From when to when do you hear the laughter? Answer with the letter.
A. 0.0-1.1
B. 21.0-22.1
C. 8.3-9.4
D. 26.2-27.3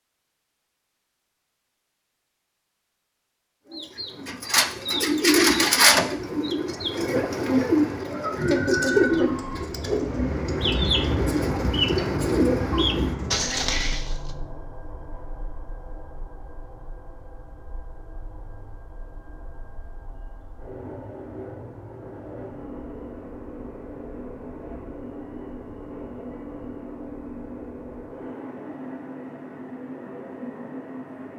C.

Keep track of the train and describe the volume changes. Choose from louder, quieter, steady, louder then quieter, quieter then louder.
quieter then louder.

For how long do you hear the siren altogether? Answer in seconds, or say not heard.
not heard.